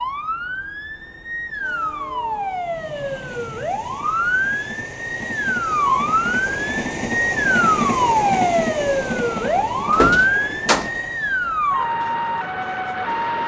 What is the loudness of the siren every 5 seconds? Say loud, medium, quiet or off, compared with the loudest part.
medium, loud, loud.